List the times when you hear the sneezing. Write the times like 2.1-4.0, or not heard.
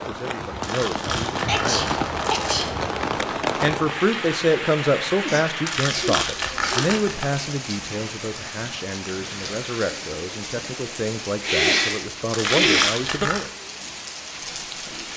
1.4-2.6, 5.2-6.9, 11.4-12.9.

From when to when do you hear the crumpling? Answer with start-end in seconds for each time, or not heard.
0.6-2.8, 5.7-7.2, 12.3-13.4.